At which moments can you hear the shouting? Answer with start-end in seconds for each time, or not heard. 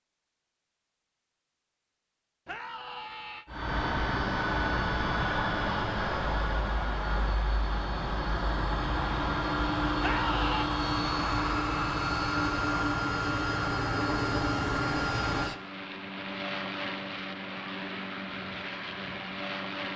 2.5-3.5, 10.0-10.7.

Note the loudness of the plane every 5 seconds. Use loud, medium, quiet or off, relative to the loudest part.
loud, loud, loud, medium.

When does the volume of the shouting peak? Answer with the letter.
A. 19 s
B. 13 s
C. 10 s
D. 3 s
C.